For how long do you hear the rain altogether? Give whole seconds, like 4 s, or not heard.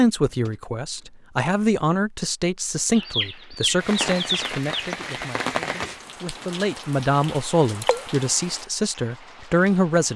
6 s.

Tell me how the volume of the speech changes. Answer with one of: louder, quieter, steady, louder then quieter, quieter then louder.
quieter then louder.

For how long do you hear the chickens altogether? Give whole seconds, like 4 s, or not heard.
2 s.